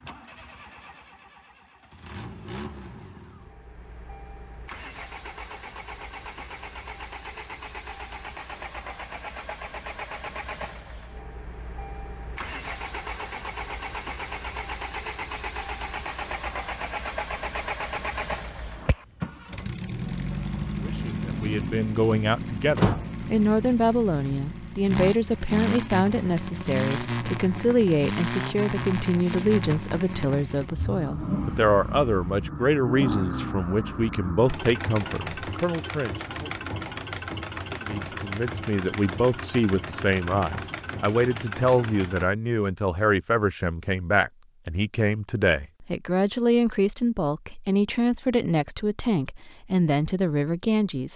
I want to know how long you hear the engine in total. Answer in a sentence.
You can hear the engine for 42 seconds altogether.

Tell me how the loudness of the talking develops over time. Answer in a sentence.
The volume of the talking stays about the same.